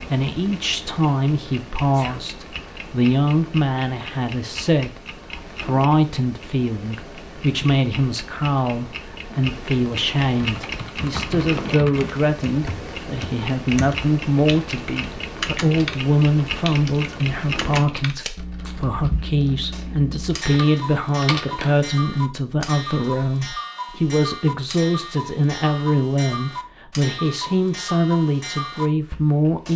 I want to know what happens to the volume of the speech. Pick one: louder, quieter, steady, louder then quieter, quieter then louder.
steady.